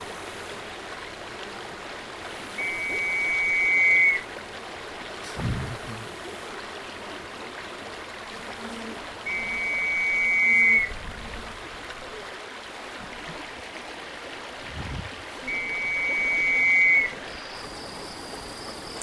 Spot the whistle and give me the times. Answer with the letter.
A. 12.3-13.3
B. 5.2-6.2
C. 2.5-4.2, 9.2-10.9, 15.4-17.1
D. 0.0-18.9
C.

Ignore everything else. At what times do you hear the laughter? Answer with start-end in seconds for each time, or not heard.
5.2-6.2.